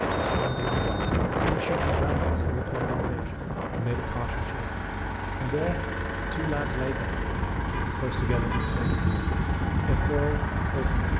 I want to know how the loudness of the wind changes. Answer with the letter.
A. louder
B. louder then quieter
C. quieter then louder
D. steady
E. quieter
C.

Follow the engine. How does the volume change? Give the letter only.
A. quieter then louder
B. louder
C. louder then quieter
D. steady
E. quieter
B.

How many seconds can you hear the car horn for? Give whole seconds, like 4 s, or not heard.
2 s.